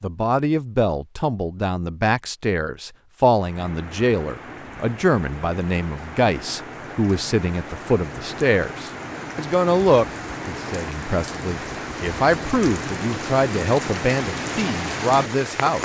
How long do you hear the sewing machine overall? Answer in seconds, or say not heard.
not heard.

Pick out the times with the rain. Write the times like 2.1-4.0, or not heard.
3.4-15.8.